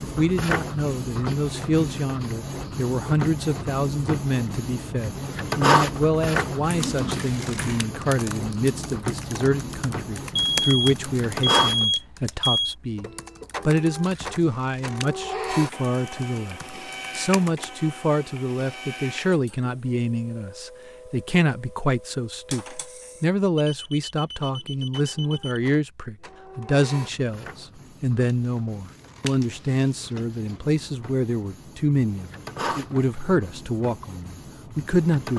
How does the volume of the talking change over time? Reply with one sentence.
The loudness of the talking stays about the same.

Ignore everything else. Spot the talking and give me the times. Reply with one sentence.
The talking can be heard from 0.0 to 35.3 s.